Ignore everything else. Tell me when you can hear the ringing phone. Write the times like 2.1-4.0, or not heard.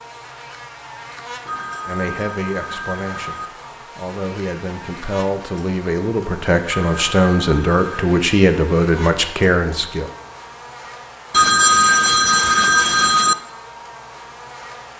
1.4-3.5, 6.7-8.1, 11.3-13.3.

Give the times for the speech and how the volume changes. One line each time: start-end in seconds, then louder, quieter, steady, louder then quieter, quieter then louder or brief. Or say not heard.
1.9-10.1 louder.